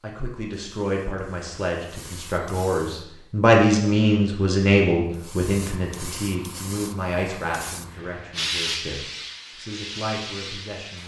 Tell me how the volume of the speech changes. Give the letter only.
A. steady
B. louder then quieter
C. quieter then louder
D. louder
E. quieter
B.